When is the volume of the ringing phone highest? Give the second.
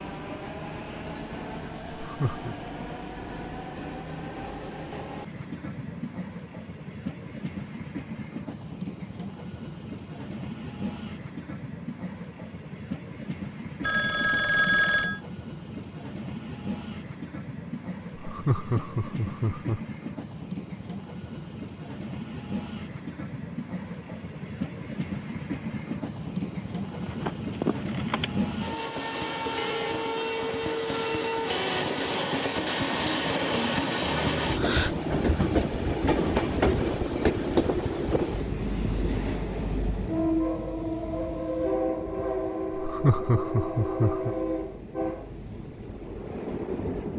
15 s.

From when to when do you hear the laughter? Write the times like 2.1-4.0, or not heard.
2.0-2.5, 18.1-19.8, 42.7-44.4.